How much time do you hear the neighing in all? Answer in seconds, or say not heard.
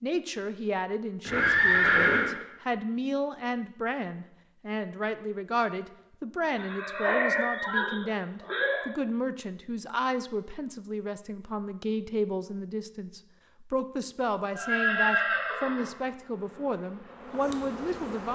5 s.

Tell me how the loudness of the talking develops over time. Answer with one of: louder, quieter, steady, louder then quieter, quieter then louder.
steady.